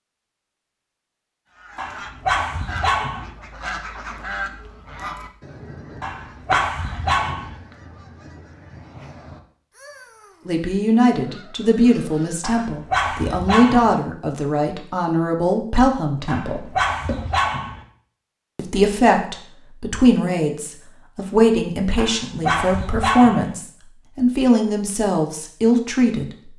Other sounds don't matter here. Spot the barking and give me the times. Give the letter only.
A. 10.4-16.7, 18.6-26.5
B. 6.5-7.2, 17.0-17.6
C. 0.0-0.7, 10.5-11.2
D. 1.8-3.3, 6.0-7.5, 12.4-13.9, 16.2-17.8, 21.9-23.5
D.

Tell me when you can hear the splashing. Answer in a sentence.
The splashing can be heard from 6.5 to 7.2 s and from 17.0 to 17.6 s.